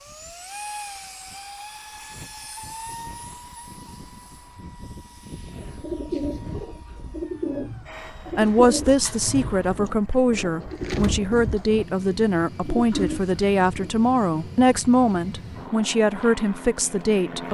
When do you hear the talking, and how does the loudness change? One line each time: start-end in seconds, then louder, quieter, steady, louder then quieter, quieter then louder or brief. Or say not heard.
8.3-17.5 steady.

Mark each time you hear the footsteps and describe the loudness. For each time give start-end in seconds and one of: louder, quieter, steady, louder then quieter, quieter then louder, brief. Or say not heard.
not heard.